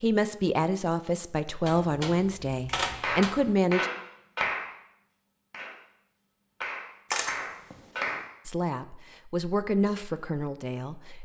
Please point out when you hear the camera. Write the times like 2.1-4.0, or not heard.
1.6-3.5, 7.1-8.2.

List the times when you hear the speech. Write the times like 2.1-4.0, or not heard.
0.0-3.9, 8.4-11.2.